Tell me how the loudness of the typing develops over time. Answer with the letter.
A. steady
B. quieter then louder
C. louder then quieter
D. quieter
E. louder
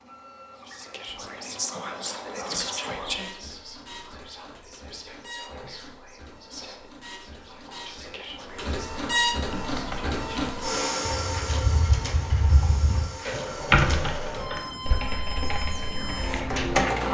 C.